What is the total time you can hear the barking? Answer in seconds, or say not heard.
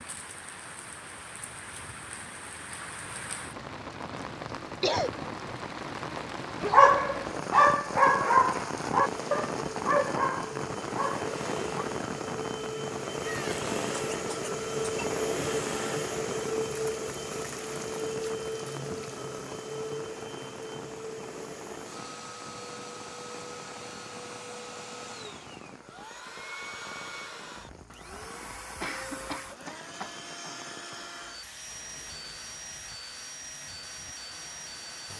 5 s.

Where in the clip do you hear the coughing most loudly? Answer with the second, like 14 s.
5 s.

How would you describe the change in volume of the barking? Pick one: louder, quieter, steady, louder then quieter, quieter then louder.
quieter.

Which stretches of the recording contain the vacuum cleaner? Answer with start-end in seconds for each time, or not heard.
8.9-35.1.